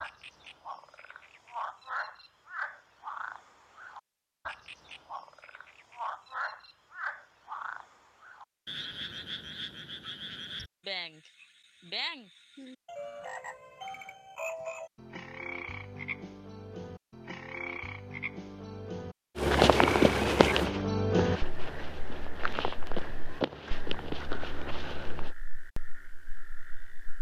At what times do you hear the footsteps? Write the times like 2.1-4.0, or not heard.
19.4-25.4.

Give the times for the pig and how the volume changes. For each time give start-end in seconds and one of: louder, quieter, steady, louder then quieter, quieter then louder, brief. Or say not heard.
not heard.